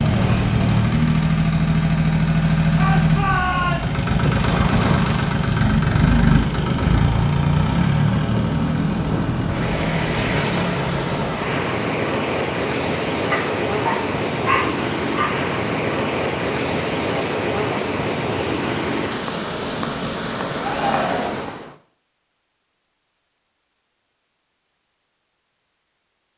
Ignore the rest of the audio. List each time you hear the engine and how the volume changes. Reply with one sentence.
The engine can be heard from 0.0 to 11.6 s, getting quieter.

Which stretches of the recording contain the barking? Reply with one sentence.
The barking can be heard from 13.3 to 15.3 s.